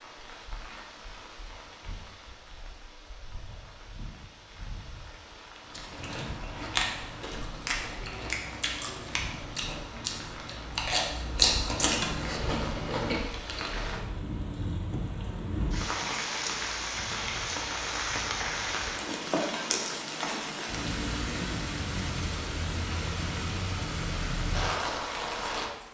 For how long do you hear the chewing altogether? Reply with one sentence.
The chewing can be heard for 8 seconds in total.